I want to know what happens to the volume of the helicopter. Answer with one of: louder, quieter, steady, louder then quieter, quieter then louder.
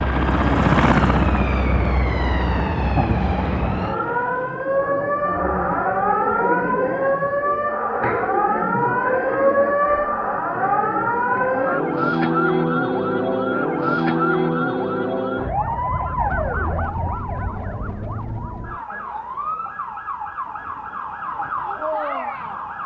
quieter.